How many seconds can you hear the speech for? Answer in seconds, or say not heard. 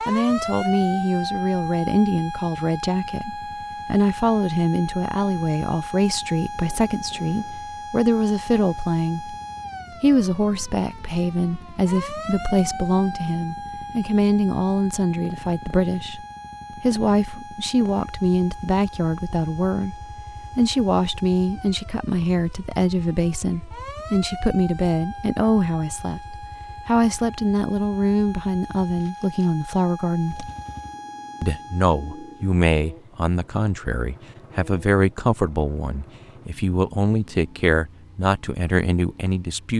38 s.